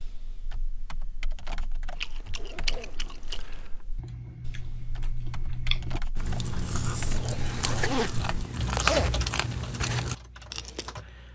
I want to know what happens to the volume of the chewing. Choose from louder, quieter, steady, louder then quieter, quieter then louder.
louder.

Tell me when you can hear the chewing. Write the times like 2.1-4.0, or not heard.
1.9-10.9.